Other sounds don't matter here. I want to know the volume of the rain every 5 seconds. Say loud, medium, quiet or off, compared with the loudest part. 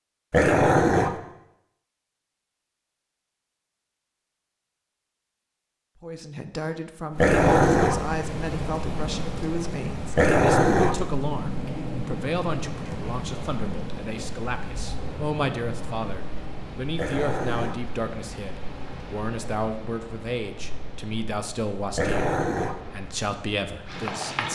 off, loud, loud, medium, medium.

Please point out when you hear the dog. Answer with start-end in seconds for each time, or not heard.
0.3-1.1, 7.2-8.0, 10.2-11.0, 16.9-17.8, 21.9-22.8.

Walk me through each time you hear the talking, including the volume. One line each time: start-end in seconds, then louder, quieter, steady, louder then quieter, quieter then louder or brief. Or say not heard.
6.0-24.4 steady.